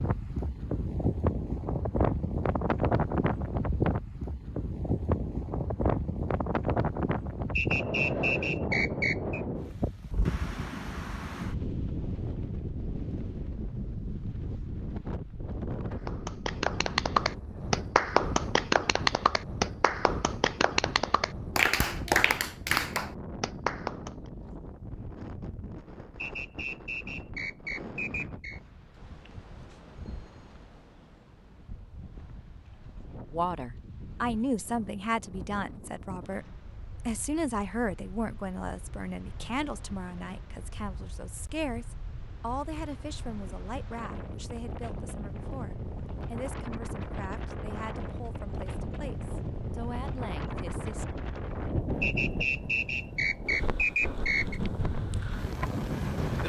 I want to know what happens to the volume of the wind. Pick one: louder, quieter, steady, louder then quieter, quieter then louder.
quieter then louder.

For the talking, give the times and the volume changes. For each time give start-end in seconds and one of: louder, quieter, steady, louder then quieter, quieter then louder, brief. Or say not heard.
33.3-51.0 quieter.